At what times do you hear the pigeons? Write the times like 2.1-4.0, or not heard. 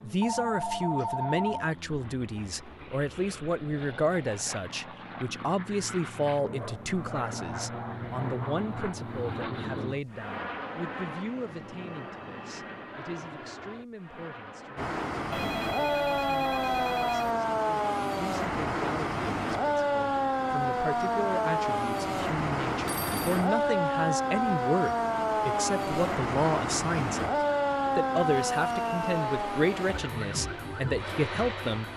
not heard.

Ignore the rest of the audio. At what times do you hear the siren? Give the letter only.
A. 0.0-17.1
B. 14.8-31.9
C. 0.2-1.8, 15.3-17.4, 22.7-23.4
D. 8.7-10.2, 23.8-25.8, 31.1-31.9
B.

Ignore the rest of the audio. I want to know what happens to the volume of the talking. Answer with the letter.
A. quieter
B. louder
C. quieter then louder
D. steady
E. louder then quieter
C.